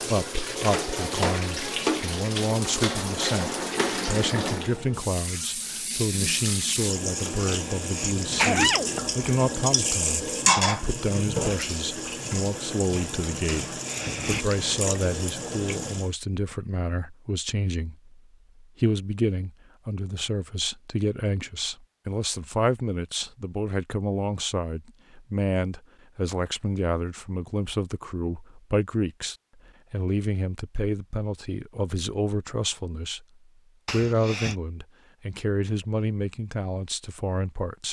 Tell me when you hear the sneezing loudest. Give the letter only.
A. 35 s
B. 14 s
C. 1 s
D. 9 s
D.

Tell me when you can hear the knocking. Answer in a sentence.
You can't hear the knocking here.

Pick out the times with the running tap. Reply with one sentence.
You can hear the running tap from 0.0 to 16.1 s.